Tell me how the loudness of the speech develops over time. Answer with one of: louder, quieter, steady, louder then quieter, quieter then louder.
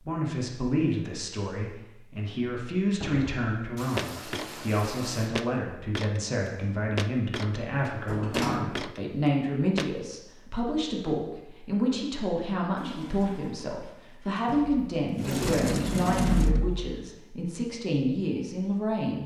steady.